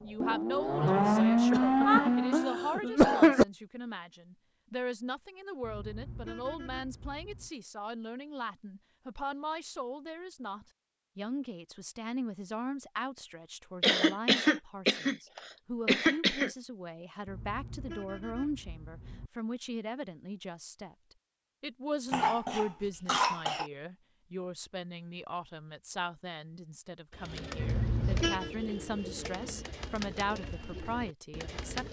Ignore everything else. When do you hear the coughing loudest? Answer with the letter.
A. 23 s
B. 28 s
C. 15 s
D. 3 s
D.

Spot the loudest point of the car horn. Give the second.
28 s.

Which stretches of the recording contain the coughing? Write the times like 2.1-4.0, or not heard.
1.5-3.5, 13.8-15.2, 15.8-16.5, 22.1-23.6.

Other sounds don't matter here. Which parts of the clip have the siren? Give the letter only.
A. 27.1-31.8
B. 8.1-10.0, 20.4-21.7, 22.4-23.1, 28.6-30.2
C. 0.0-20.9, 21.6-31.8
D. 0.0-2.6
D.